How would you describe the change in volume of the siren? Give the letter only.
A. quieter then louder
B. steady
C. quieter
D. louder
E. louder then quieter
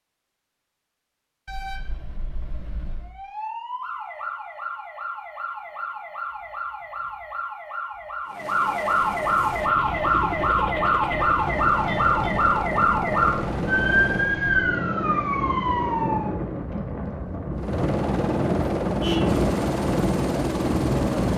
D.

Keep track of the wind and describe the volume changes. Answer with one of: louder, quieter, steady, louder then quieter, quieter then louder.
louder.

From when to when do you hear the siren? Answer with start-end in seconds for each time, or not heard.
3.0-16.3.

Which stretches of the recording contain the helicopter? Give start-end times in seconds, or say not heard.
8.2-14.4, 17.5-21.3.